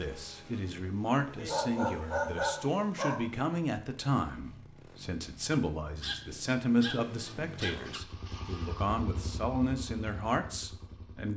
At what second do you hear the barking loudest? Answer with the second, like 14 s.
2 s.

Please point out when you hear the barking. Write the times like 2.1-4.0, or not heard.
1.4-3.2, 6.0-7.8.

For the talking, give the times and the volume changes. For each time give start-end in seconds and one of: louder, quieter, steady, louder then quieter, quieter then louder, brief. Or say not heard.
0.0-11.3 steady.